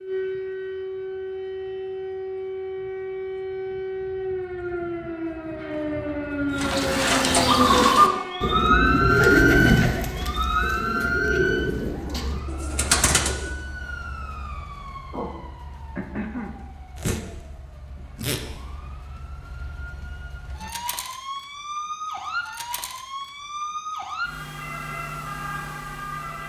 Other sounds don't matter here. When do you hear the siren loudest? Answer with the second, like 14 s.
9 s.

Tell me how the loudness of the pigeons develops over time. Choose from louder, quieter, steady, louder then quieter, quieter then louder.
quieter.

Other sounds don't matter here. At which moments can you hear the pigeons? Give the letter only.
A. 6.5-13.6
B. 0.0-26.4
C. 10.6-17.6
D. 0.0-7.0
A.